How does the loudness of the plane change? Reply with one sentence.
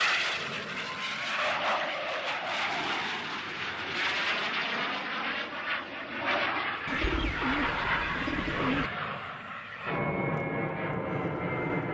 The volume of the plane stays about the same.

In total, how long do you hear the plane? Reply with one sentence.
You can hear the plane for 12 seconds altogether.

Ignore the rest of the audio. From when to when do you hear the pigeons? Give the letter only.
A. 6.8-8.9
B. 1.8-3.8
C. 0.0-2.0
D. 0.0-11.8
A.